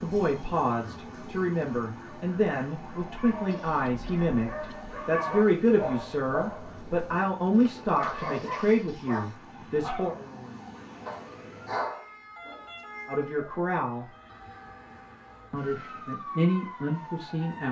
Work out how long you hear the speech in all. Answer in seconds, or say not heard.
13 s.